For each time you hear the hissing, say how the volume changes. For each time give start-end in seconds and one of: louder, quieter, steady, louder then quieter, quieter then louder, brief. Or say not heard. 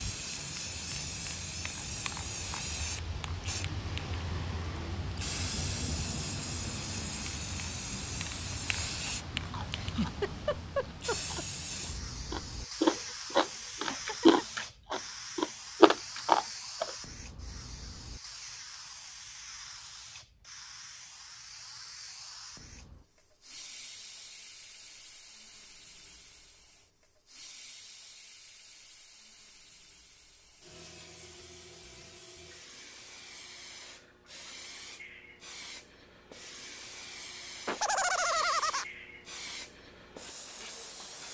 0.0-41.2 quieter then louder.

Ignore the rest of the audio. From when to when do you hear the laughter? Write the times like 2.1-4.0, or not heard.
9.7-11.4, 13.8-14.4, 37.6-38.9.